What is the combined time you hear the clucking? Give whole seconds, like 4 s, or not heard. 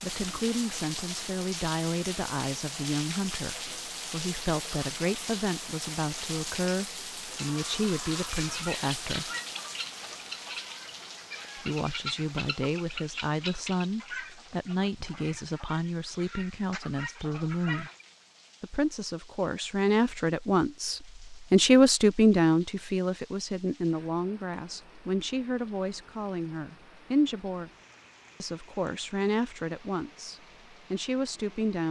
11 s.